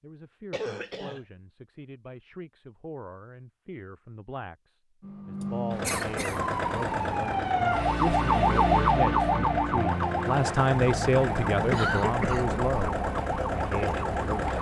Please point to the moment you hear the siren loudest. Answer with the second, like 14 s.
9 s.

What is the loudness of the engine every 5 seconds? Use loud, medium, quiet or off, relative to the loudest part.
off, loud, loud.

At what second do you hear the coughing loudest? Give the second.
12 s.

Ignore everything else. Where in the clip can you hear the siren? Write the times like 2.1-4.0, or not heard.
6.3-14.5.